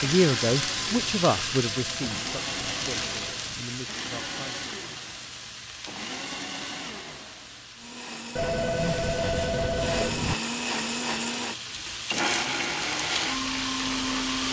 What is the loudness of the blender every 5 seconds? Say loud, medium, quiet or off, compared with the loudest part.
medium, medium, loud.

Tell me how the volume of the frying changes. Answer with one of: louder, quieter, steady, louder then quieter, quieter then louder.
quieter then louder.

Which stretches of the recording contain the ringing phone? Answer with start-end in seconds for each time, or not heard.
1.6-3.6, 8.3-10.3.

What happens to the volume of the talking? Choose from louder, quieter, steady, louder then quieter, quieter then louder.
quieter.